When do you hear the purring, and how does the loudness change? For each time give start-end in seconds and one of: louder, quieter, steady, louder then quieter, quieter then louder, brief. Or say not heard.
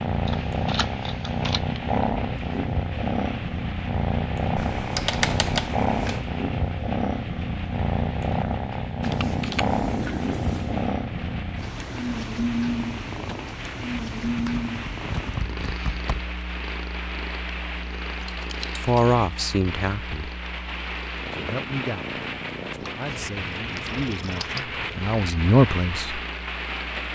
0.0-27.1 quieter.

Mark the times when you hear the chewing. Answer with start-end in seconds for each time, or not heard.
not heard.